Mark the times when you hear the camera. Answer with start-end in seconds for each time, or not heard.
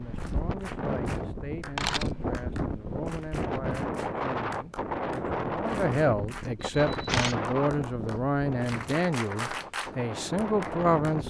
1.6-2.3, 6.6-7.3.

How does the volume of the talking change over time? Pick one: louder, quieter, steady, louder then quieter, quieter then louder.
louder.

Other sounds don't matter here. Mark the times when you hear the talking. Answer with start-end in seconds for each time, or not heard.
0.0-11.2.